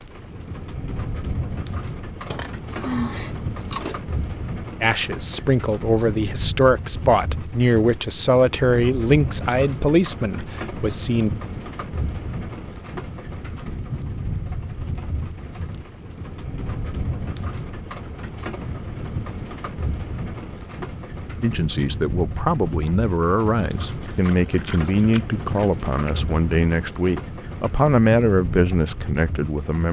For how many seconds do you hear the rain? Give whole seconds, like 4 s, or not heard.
30 s.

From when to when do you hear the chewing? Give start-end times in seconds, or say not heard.
2.3-4.0, 24.0-26.1.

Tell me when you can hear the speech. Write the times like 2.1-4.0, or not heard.
4.8-11.3, 21.4-29.8.